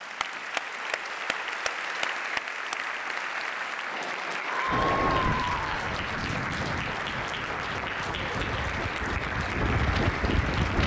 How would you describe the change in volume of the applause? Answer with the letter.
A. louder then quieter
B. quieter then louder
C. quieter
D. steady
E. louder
D.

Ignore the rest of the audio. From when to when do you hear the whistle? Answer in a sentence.
You can't hear the whistle here.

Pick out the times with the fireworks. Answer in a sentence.
The fireworks can't be heard in this clip.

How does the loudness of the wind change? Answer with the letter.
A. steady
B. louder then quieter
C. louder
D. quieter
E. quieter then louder
E.